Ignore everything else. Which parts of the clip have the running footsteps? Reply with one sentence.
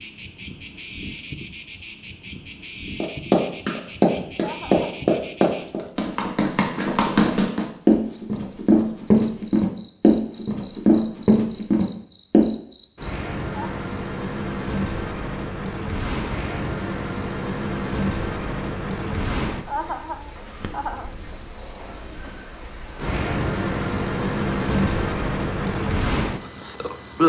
You can hear the running footsteps from 3.0 to 12.5 s.